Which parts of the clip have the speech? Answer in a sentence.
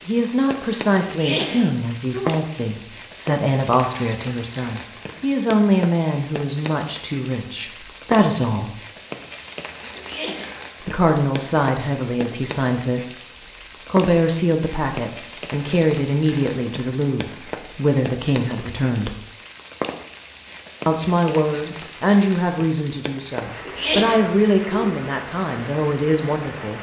The speech can be heard from 0.1 to 8.8 s, from 10.8 to 13.2 s, from 13.8 to 19.2 s and from 20.9 to 26.7 s.